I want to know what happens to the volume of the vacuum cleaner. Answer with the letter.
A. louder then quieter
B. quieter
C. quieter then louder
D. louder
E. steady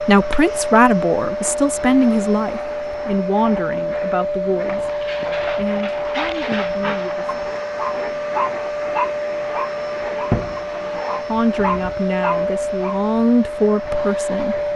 E.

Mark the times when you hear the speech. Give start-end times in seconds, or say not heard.
0.1-7.3, 11.2-14.7.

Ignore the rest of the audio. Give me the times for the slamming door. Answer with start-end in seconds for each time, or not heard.
not heard.